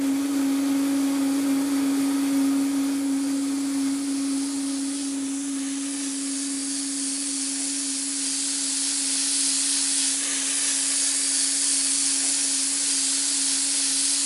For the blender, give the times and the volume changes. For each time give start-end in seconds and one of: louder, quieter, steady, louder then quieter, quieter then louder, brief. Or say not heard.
0.0-14.2 quieter.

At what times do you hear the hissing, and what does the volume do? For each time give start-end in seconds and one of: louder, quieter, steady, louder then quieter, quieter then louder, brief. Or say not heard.
0.0-14.2 louder.